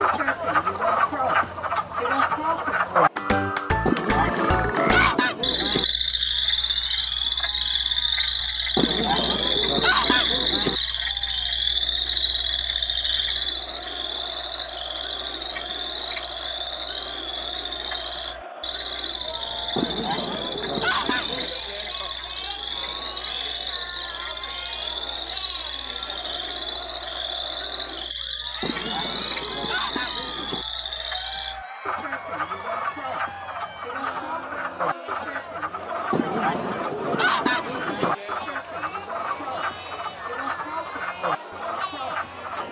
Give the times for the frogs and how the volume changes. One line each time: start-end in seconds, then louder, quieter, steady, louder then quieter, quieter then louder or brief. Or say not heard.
0.0-42.6 quieter.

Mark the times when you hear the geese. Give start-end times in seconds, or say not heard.
3.9-5.8, 8.8-10.8, 19.8-21.5, 28.6-30.6, 36.1-38.1.